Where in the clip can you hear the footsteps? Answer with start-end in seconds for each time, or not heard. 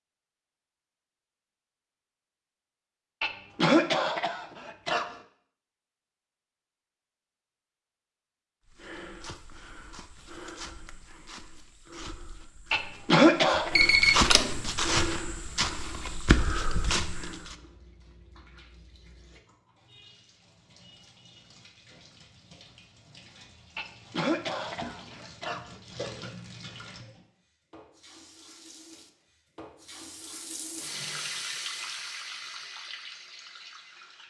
8.7-17.6.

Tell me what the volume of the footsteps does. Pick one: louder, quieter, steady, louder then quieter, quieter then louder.
louder.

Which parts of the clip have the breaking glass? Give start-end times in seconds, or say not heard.
not heard.